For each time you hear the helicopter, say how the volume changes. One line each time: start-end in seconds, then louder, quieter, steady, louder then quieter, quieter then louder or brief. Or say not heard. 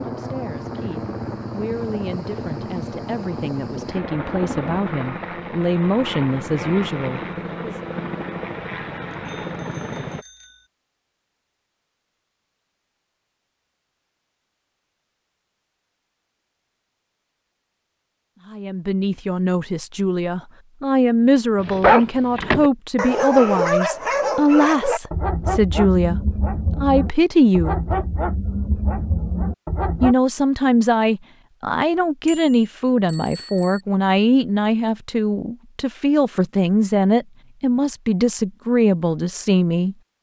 0.0-10.2 steady.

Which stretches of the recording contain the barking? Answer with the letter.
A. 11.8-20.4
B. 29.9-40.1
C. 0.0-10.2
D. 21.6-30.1
D.